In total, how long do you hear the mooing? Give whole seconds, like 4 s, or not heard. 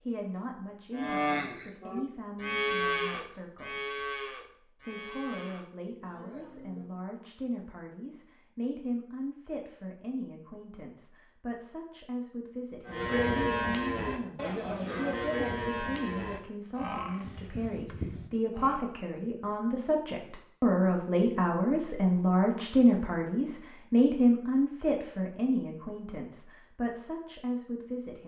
12 s.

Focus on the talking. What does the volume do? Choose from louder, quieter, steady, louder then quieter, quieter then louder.
louder.